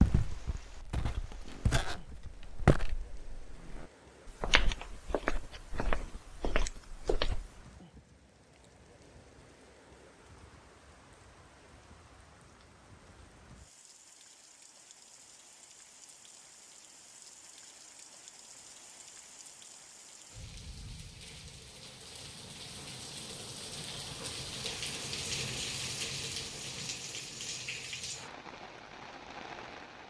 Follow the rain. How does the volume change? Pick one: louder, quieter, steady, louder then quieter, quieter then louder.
louder.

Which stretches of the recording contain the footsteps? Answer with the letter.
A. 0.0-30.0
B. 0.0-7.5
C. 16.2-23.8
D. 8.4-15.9
B.